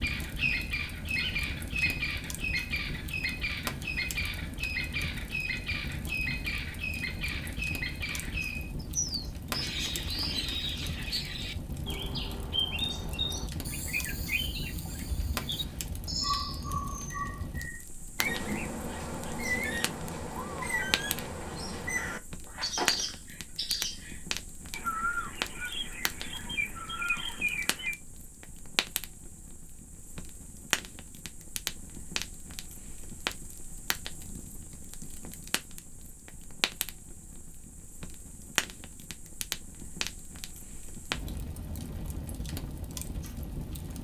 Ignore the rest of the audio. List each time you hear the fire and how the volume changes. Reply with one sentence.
The fire can be heard from 0.0 to 43.9 s, at a steady volume.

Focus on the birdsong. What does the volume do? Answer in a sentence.
The volume of the birdsong stays about the same.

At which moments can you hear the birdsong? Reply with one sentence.
You can hear the birdsong from 0.0 to 27.9 s.